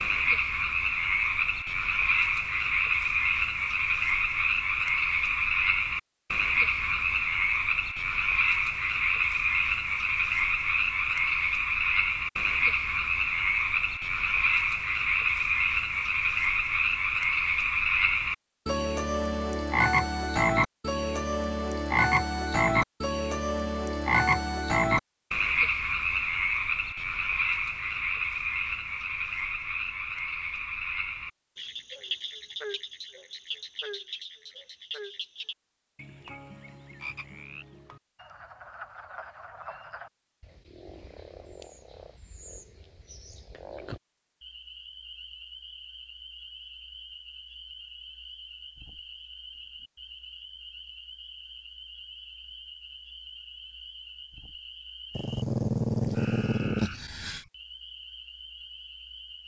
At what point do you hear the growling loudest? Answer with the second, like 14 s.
56 s.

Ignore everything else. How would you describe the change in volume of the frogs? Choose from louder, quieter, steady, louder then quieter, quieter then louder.
quieter.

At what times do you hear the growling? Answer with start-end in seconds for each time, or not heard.
55.1-57.5.